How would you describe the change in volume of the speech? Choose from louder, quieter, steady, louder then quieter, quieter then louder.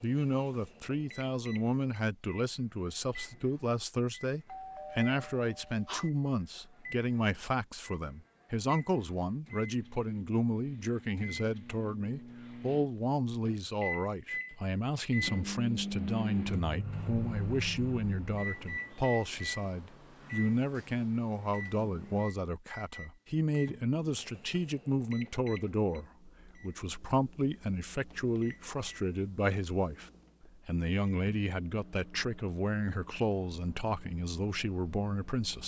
steady.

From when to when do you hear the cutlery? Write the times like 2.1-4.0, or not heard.
not heard.